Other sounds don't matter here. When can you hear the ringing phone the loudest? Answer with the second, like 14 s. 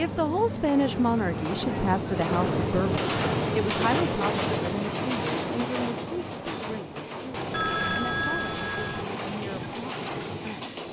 8 s.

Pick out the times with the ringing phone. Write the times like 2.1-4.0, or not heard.
7.5-9.1.